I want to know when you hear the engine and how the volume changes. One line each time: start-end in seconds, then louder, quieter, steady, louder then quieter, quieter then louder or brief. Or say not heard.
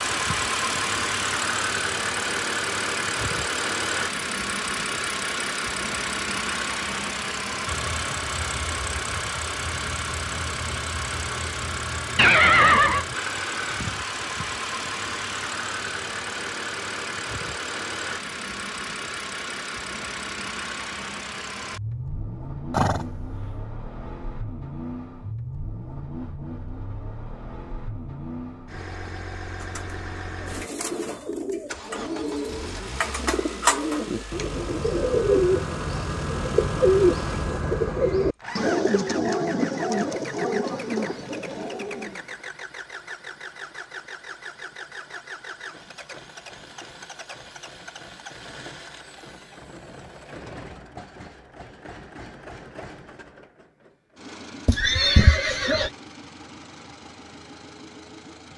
0.0-58.5 quieter.